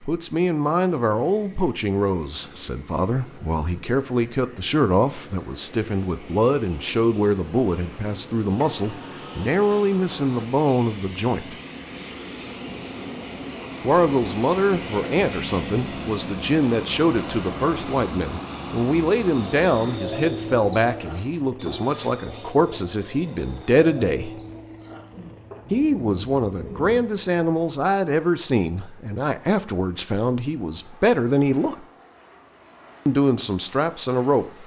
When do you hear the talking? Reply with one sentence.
You can hear the talking from 0.0 to 11.6 s, from 13.8 to 24.3 s, from 25.7 to 31.9 s and from 33.0 to 34.6 s.